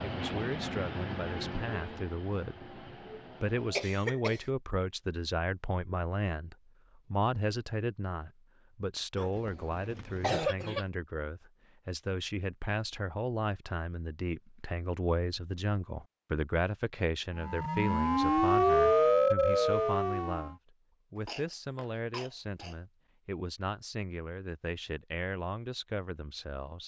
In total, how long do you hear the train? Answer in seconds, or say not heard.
4 s.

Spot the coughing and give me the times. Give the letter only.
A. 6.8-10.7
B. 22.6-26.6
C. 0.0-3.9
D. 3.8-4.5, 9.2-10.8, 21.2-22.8
D.